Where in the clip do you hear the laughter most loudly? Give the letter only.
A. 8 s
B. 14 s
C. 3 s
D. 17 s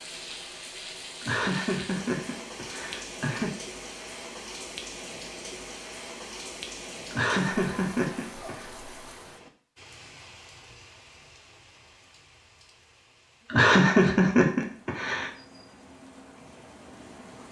B.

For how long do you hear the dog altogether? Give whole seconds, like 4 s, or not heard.
not heard.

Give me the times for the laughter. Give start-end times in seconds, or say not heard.
1.2-3.5, 7.1-8.7, 13.5-15.3.